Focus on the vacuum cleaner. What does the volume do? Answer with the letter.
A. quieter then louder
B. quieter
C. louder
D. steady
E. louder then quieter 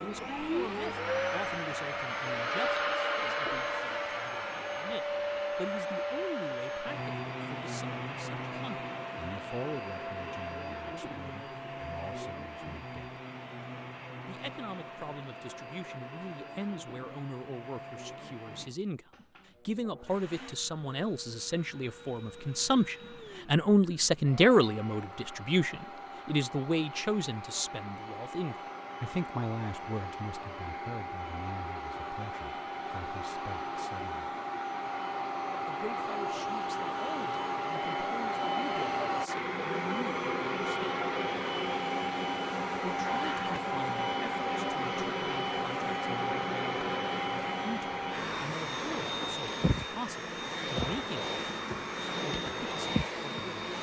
A.